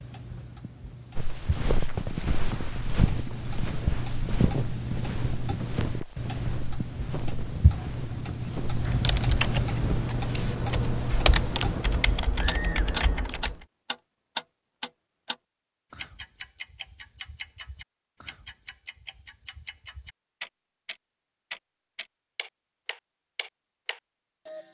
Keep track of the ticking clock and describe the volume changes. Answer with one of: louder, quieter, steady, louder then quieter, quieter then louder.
louder then quieter.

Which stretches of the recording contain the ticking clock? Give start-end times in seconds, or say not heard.
0.0-24.6.